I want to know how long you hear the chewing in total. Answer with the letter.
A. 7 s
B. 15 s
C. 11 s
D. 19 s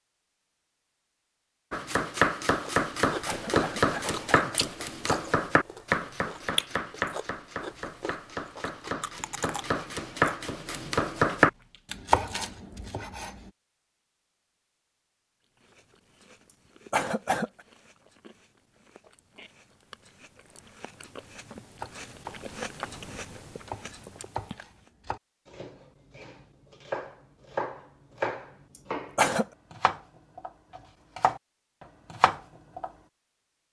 D.